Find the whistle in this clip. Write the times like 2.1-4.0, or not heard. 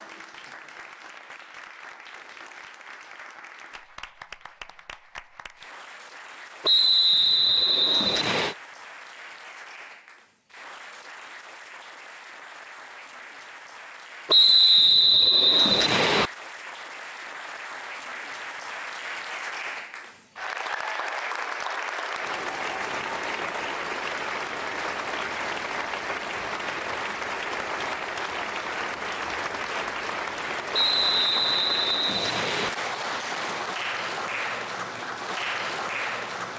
6.6-8.6, 14.2-16.3, 30.7-32.7.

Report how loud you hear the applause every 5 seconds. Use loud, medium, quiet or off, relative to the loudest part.
quiet, quiet, quiet, medium, loud, loud, loud, loud.